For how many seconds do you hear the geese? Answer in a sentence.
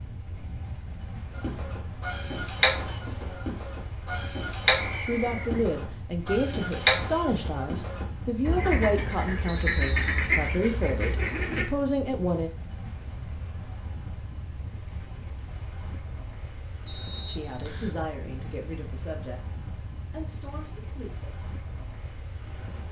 The geese can be heard for 10 seconds in total.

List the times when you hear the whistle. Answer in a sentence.
You can hear the whistle from 4.8 to 5.5 s, from 9.4 to 10.2 s and from 16.9 to 18.0 s.